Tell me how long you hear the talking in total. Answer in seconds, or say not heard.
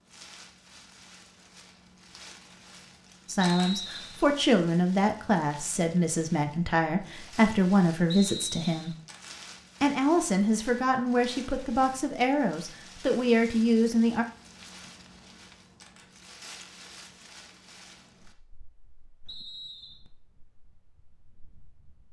10 s.